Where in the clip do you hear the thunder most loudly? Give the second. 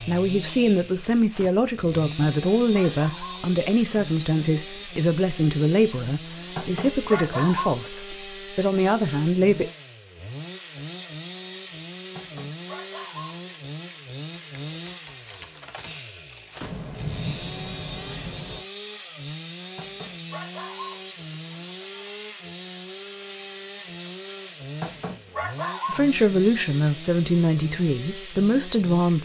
17 s.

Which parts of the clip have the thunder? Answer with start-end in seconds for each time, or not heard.
16.6-18.6.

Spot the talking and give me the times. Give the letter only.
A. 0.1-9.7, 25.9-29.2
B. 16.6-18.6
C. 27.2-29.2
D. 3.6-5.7
A.